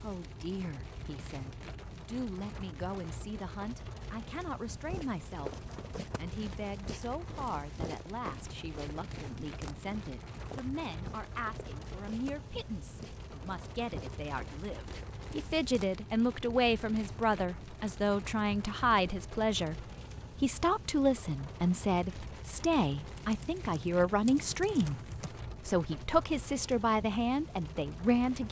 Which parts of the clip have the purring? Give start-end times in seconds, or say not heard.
not heard.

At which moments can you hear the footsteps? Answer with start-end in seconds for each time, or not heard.
4.7-15.8.